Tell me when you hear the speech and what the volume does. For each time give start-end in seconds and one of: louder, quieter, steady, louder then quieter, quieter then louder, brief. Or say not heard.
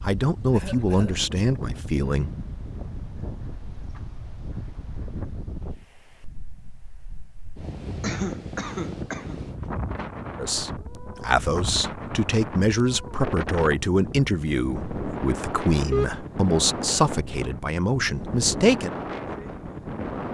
0.0-2.3 brief
10.3-18.9 steady.